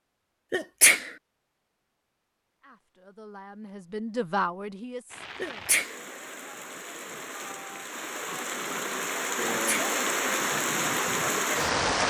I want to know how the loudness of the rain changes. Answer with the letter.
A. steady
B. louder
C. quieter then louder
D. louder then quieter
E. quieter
B.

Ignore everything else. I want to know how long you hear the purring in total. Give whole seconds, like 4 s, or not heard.
not heard.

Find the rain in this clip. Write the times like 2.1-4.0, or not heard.
5.1-12.0.